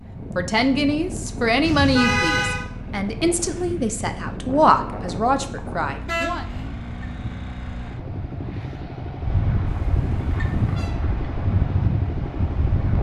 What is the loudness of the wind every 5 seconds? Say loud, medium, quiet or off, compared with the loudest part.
medium, medium, loud.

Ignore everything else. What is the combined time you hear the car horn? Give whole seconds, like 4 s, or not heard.
3 s.